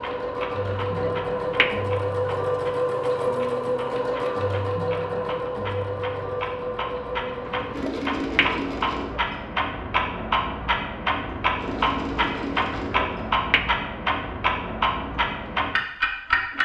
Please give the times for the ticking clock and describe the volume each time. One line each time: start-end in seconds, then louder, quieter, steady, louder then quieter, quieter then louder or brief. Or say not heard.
0.0-16.5 louder.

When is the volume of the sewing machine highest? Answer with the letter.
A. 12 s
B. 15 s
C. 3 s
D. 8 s
C.